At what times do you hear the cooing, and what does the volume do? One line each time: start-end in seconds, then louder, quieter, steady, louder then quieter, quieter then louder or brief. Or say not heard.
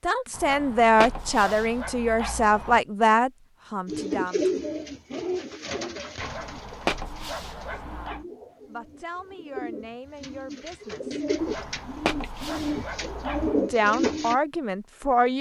3.9-14.4 quieter then louder.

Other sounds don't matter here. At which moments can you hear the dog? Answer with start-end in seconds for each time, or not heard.
0.3-2.8, 6.2-8.2, 11.3-13.7.